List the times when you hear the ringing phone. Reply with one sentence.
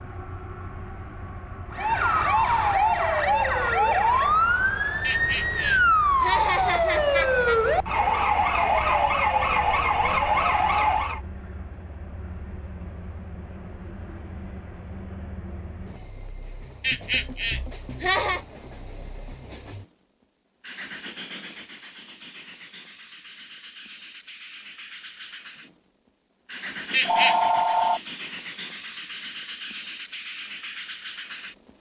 The ringing phone can be heard from 27.1 to 28.0 s.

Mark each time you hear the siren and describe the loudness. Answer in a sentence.
You can hear the siren from 1.7 to 11.2 s, at a steady volume.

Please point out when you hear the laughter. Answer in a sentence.
The laughter can be heard from 5.0 to 7.6 s, from 16.8 to 18.4 s and from 26.9 to 27.4 s.